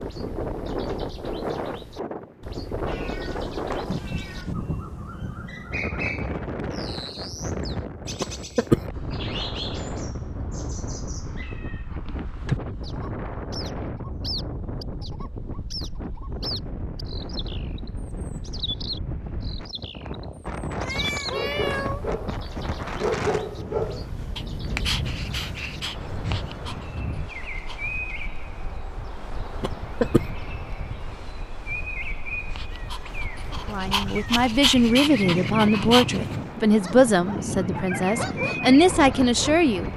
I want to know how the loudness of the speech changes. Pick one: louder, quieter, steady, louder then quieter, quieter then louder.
quieter then louder.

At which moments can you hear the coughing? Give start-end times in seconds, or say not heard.
8.2-8.8, 29.6-30.2.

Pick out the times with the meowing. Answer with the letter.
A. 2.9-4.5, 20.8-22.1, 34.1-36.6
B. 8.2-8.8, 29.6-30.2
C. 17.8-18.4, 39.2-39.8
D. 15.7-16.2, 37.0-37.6
A.